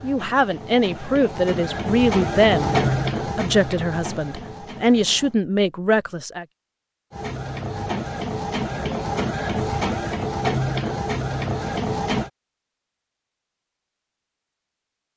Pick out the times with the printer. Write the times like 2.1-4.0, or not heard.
0.0-5.3, 7.1-12.3.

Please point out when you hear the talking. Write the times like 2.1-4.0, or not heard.
0.0-6.5.